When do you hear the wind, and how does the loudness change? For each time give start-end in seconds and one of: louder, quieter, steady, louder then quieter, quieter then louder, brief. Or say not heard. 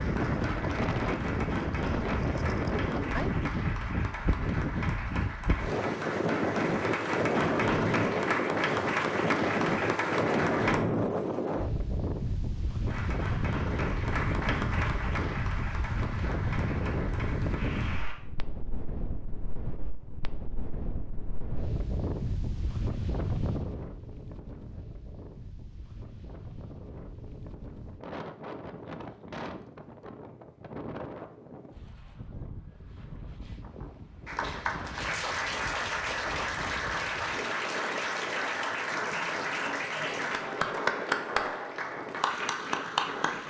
0.0-43.4 quieter.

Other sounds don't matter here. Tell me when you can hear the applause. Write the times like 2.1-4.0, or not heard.
0.0-10.8, 12.8-18.1, 34.2-43.4.